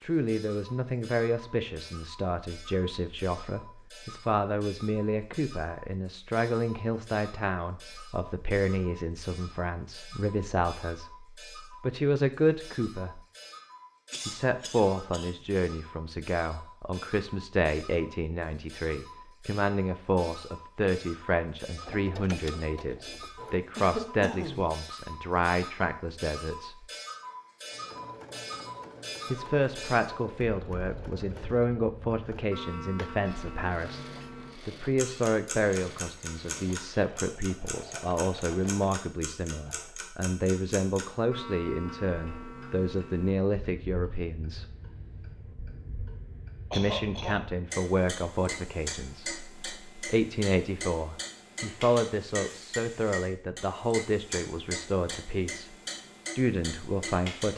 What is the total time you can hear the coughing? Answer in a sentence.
You can hear the coughing for 3 seconds altogether.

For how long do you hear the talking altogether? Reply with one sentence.
The talking can be heard for 51 seconds in total.